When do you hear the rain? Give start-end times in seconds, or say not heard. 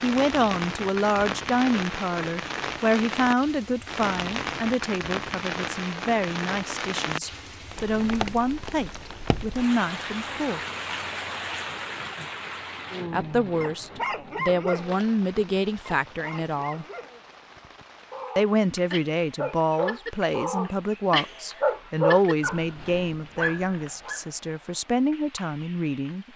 0.0-26.3.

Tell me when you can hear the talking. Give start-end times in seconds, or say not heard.
0.0-10.6, 13.1-16.9, 18.4-26.3.